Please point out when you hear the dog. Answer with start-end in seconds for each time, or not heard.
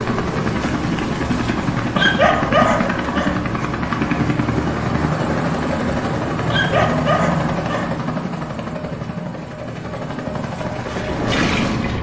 1.9-3.4, 6.5-7.9.